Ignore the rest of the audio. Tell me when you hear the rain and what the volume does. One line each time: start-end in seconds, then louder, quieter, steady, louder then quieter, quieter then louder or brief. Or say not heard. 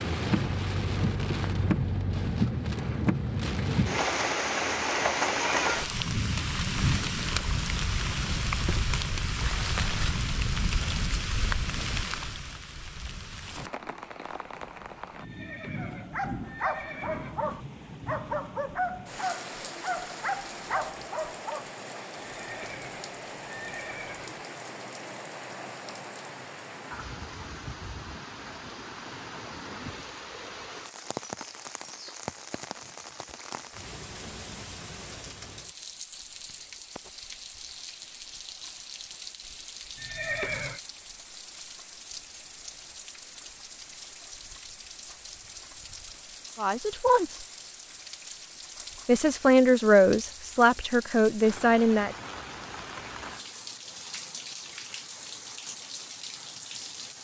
0.0-57.1 quieter.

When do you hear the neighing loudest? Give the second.
40 s.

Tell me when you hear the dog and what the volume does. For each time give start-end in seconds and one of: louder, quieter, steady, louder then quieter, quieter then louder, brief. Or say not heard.
15.8-21.7 steady.